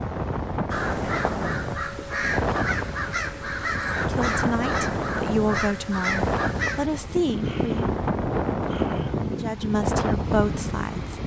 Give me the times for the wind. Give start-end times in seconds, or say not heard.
0.0-11.2.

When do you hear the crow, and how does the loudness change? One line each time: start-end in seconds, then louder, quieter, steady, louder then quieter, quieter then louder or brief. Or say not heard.
0.7-11.1 steady.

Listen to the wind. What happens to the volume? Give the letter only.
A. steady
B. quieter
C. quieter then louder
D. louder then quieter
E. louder
A.